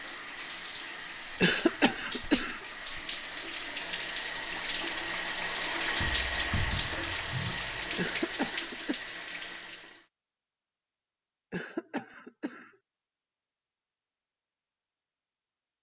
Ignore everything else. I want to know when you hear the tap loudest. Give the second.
6 s.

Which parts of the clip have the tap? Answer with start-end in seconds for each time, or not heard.
0.0-10.1.